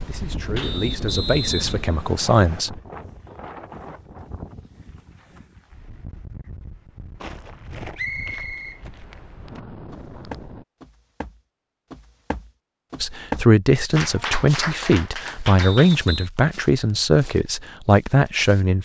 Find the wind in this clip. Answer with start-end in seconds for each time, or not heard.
0.0-10.7.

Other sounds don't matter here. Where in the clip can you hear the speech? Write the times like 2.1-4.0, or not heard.
0.1-2.8, 13.0-18.8.